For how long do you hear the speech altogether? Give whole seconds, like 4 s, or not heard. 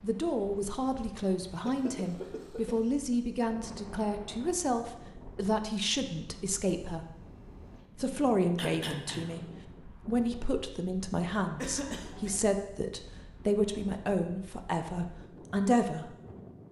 15 s.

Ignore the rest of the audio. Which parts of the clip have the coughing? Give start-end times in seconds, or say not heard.
1.4-2.9, 8.6-9.4, 11.6-12.4.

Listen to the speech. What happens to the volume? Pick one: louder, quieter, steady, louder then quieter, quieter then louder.
steady.